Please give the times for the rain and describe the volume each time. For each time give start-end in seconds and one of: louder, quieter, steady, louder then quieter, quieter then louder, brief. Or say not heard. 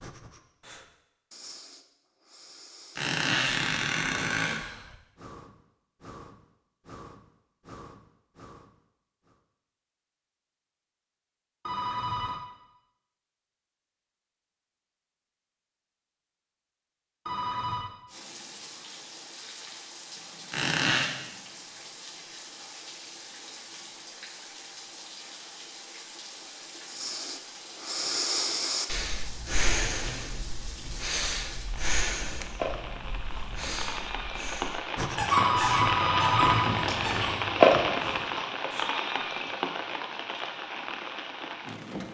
18.1-42.1 louder.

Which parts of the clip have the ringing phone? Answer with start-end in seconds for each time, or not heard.
11.7-12.4, 17.2-17.9, 35.3-37.4.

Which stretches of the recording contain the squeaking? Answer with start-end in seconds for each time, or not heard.
3.0-4.6, 20.5-21.1, 35.1-37.6.